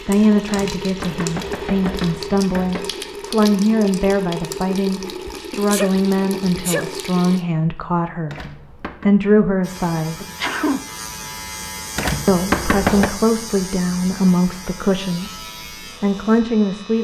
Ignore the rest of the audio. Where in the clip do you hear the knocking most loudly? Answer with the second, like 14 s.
13 s.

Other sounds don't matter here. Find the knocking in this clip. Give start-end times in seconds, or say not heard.
0.5-3.0, 8.2-9.1, 11.9-13.2.